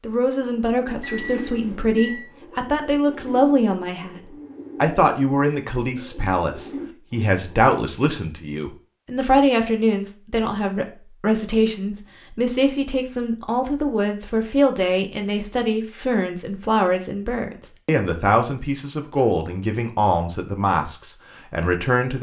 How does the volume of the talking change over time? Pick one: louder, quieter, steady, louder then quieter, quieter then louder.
steady.